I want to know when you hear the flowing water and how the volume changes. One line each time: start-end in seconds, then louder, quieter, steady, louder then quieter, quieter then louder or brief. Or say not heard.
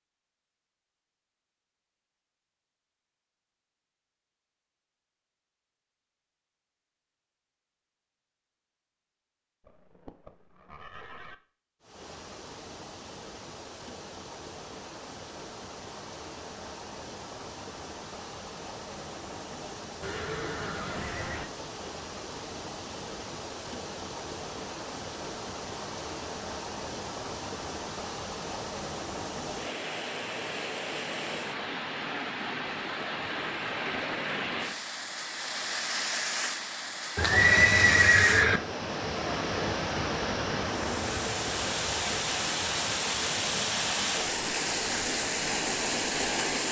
11.8-46.6 louder.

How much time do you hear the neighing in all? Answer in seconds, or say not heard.
5 s.